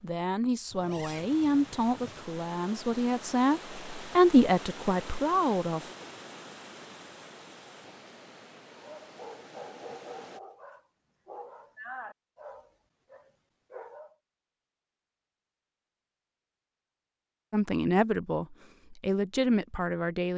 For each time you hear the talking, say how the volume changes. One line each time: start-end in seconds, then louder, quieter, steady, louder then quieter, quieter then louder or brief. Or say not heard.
0.0-5.9 louder then quieter
17.5-20.3 brief.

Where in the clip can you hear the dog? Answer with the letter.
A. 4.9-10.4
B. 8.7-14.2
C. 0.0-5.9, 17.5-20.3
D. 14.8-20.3
B.